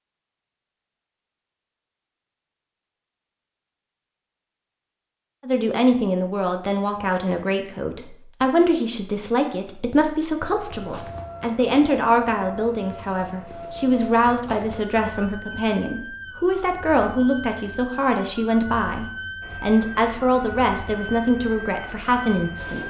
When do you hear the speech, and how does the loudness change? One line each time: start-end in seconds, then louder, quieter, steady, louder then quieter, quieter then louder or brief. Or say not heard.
5.5-22.8 steady.